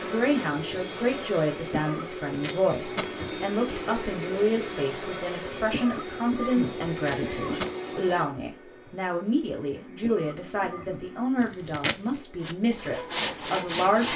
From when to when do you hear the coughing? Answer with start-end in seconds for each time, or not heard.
1.7-2.1, 5.7-7.7, 10.0-11.1.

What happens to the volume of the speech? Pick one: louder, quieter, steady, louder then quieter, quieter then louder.
steady.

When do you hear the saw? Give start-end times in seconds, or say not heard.
12.4-14.1.